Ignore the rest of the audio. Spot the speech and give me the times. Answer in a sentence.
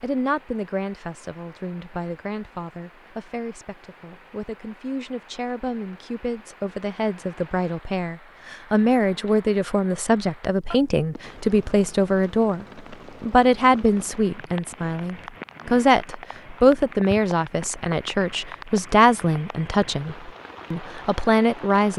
The speech can be heard from 0.0 to 21.9 s.